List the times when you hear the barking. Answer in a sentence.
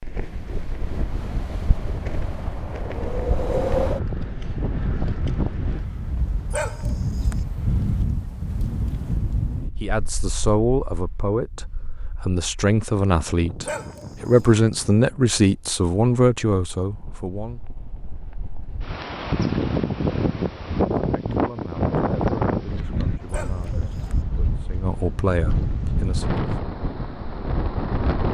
The barking can be heard from 6.5 to 7.3 s, from 13.6 to 14.5 s and from 23.3 to 24.1 s.